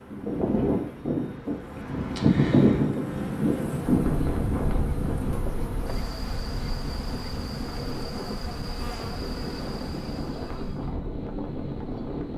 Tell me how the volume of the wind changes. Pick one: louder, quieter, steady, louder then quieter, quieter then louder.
quieter.